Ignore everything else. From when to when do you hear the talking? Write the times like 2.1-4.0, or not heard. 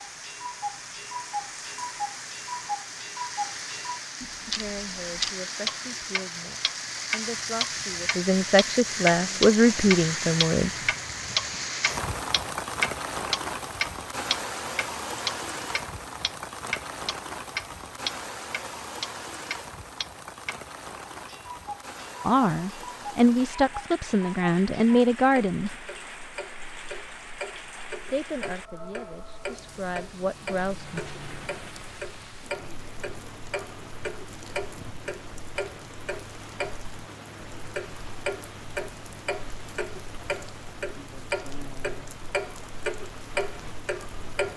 4.5-10.8, 22.2-25.7, 27.9-31.1.